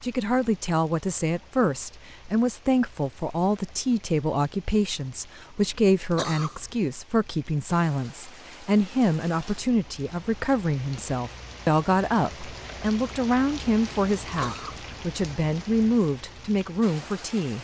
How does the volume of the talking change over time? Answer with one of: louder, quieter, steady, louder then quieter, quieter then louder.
steady.